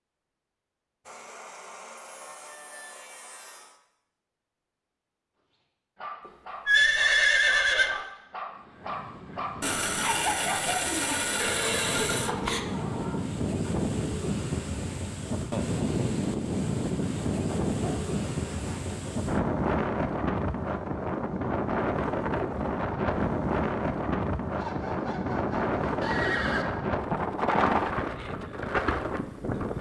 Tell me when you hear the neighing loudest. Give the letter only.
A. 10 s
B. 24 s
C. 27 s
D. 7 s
D.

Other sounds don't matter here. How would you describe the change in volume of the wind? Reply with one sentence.
The volume of the wind goes up.